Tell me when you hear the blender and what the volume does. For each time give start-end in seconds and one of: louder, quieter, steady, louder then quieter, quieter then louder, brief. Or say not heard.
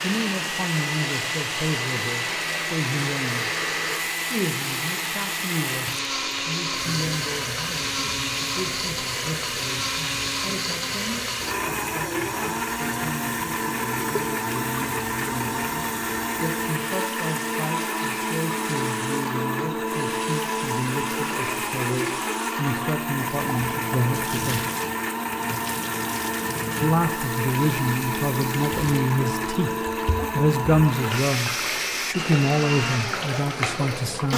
0.0-34.3 steady.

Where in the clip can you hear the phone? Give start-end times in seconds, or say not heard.
3.1-4.2.